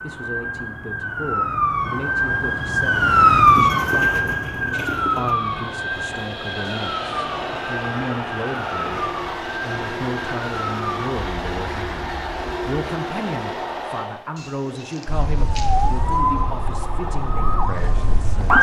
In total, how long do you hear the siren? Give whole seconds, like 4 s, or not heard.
16 s.